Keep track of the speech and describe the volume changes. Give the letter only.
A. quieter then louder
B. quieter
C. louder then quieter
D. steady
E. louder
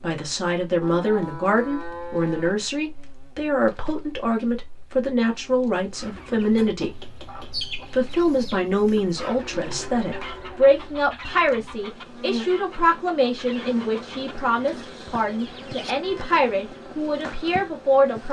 D.